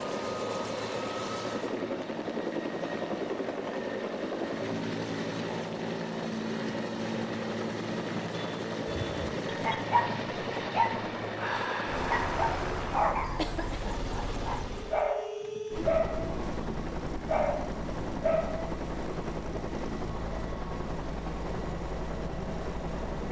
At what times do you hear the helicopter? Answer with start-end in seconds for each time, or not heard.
0.0-23.2.